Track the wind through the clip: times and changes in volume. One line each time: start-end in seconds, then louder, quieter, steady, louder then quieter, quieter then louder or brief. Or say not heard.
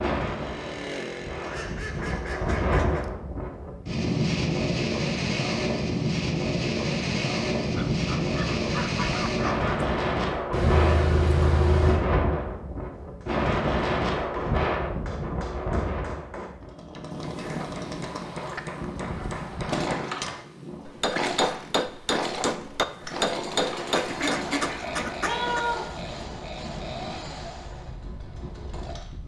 0.0-29.2 quieter.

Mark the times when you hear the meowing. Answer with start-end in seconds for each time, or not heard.
10.5-12.0, 25.2-26.1.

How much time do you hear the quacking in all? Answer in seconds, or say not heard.
8 s.